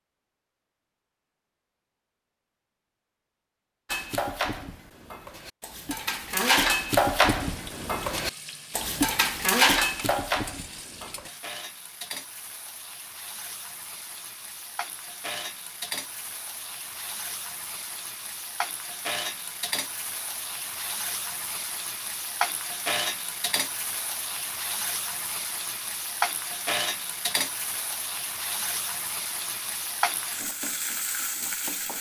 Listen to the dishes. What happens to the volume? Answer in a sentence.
The volume of the dishes goes up.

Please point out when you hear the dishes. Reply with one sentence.
The dishes can be heard from 3.9 to 11.3 s.